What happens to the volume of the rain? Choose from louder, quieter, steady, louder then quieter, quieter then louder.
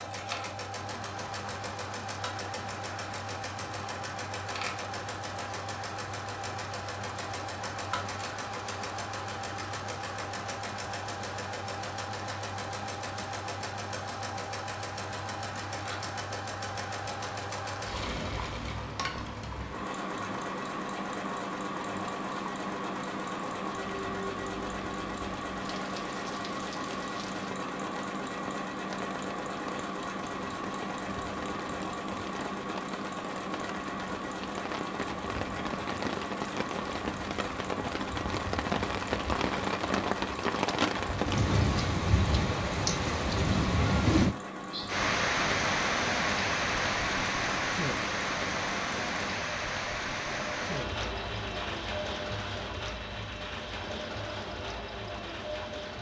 louder.